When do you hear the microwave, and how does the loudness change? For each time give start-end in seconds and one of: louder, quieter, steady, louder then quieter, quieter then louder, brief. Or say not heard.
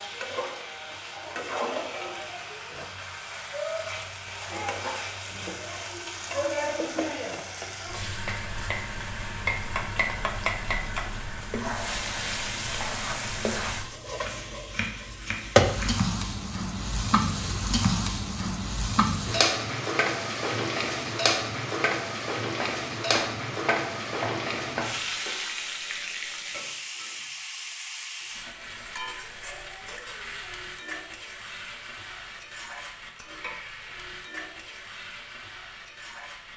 not heard.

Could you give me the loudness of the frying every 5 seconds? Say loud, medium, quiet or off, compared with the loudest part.
medium, medium, medium, loud, loud, medium, quiet, quiet.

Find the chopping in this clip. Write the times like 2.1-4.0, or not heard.
14.2-16.0, 22.6-25.1.